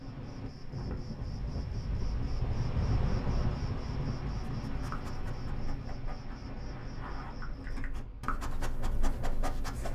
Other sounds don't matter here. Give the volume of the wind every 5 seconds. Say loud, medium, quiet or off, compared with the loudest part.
loud, medium.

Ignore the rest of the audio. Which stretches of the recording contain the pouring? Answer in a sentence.
You can't hear the pouring here.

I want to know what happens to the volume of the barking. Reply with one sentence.
The volume of the barking goes up.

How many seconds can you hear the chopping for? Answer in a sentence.
The chopping can't be heard in this clip.